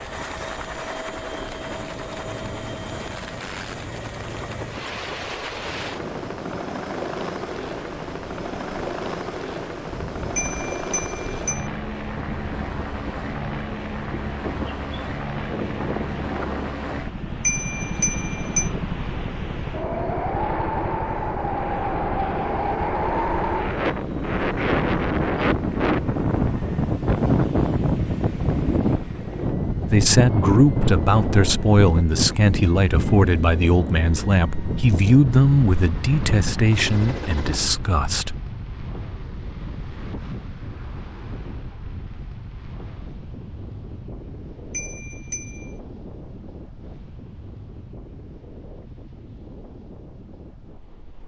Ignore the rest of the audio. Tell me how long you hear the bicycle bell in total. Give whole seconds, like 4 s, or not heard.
4 s.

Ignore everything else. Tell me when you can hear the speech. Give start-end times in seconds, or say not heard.
29.9-38.4.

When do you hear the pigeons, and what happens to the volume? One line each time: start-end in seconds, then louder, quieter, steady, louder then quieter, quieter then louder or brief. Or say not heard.
not heard.